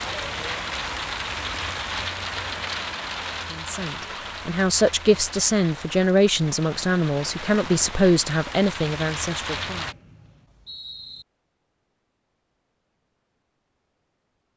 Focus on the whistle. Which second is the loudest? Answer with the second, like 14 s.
11 s.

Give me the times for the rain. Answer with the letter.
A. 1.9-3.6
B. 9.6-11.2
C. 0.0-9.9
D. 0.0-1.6
C.